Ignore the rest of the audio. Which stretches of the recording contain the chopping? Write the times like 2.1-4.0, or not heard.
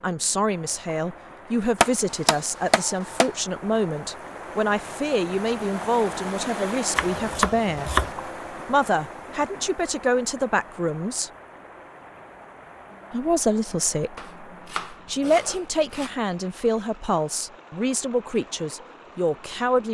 1.8-3.3, 7.0-8.2, 14.2-16.1.